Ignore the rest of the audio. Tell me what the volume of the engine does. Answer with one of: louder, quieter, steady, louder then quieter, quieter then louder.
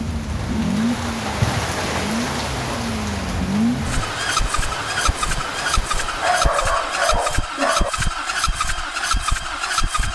steady.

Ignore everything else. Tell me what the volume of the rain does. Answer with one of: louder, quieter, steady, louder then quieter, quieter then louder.
quieter.